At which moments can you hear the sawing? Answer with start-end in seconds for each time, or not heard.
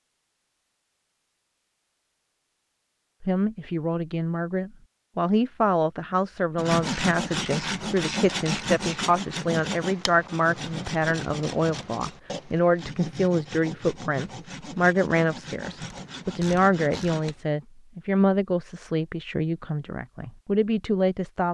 6.5-17.4.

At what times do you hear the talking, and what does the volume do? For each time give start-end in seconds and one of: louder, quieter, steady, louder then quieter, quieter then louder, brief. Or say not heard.
3.2-21.4 steady.